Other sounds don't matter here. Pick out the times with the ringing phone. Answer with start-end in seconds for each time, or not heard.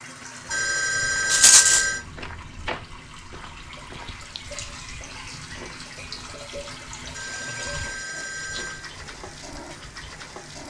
0.5-2.0, 7.1-8.9.